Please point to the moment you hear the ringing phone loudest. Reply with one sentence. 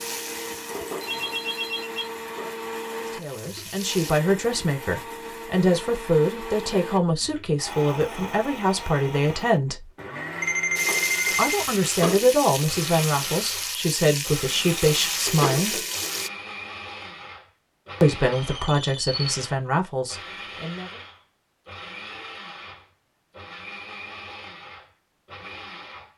The loudest moment of the ringing phone is at 11 seconds.